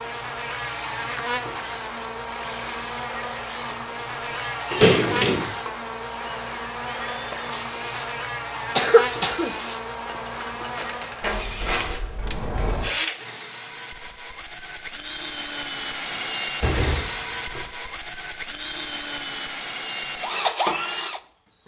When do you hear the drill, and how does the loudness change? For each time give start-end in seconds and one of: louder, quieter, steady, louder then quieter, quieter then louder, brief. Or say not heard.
0.0-21.6 louder.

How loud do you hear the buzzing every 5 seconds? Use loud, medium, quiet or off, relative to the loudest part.
loud, loud, loud, off, off.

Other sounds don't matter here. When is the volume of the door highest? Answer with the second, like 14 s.
5 s.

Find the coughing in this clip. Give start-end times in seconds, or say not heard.
8.8-9.5.